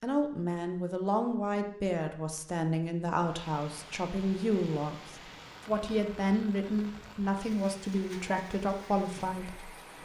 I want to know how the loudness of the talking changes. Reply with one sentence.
The loudness of the talking stays about the same.